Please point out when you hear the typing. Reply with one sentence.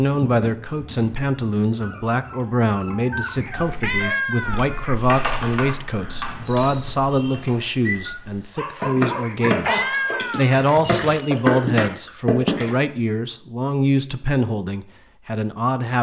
You can hear the typing from 3.5 to 12.8 s.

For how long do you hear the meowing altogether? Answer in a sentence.
The meowing can be heard for 3 seconds in total.